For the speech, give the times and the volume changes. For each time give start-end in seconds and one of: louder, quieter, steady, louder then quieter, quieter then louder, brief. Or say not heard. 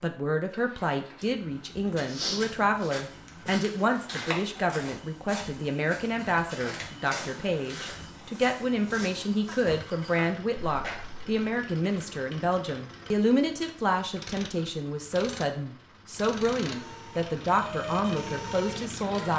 0.0-19.3 steady.